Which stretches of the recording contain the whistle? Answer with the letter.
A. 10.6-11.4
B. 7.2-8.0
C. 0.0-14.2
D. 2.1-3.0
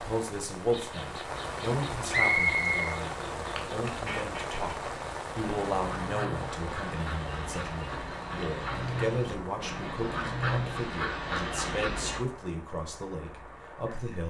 D.